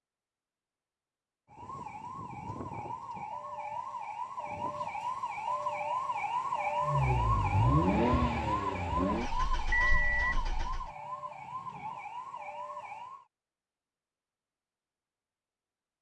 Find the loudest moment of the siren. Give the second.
7 s.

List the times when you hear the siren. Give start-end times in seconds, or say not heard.
1.5-13.2.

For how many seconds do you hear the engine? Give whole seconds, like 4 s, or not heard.
4 s.